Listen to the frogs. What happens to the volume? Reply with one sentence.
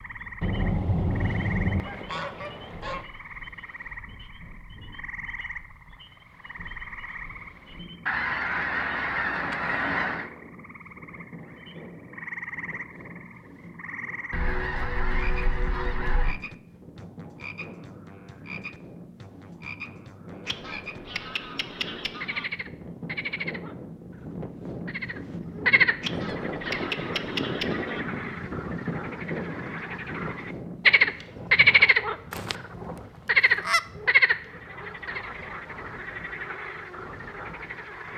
The volume of the frogs goes up.